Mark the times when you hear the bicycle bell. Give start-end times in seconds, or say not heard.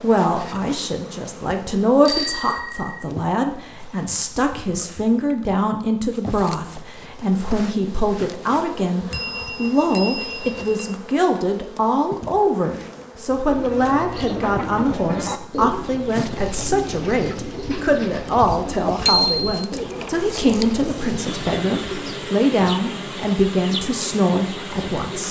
2.0-3.0, 9.1-10.9, 19.1-19.6.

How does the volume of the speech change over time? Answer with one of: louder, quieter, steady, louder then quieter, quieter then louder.
steady.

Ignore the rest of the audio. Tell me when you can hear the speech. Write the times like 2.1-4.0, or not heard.
0.0-25.2.